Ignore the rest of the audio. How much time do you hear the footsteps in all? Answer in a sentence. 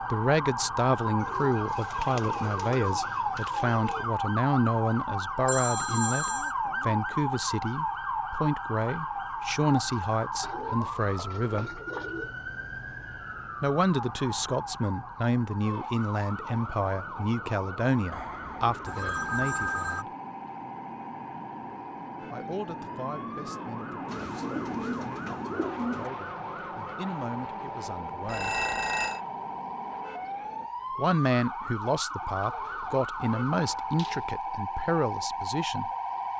You can't hear the footsteps here.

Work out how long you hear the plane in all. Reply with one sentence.
The plane can be heard for 14 seconds in total.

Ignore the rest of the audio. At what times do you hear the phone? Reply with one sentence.
You can hear the phone from 5.5 to 6.5 s, from 18.9 to 20.1 s and from 28.2 to 29.2 s.